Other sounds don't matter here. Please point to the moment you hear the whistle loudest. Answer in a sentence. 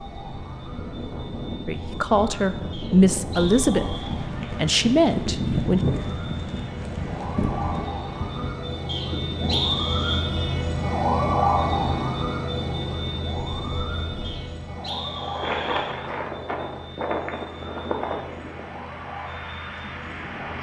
The volume of the whistle peaks at 10 seconds.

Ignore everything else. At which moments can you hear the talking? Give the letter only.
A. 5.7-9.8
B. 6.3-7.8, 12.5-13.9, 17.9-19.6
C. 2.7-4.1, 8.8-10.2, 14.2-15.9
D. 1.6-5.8
D.